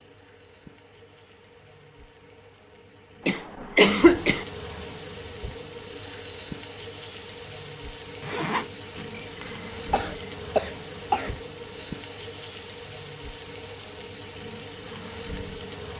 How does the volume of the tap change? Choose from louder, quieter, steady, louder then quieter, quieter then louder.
louder.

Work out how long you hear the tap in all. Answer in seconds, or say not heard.
16 s.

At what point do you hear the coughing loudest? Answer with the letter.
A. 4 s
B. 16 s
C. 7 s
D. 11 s
A.